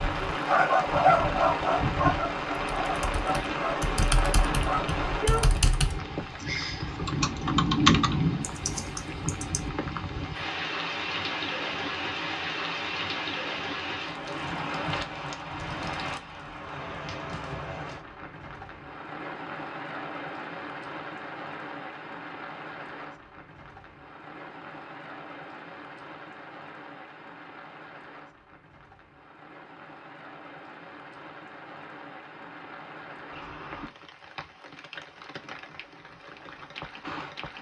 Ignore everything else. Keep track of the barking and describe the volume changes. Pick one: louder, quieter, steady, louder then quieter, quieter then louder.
quieter.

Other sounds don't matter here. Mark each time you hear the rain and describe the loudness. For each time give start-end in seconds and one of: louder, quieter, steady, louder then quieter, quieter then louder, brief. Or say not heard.
0.0-37.5 quieter.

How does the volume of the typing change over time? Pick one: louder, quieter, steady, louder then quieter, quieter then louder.
louder then quieter.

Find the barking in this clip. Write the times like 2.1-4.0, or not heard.
0.0-5.5.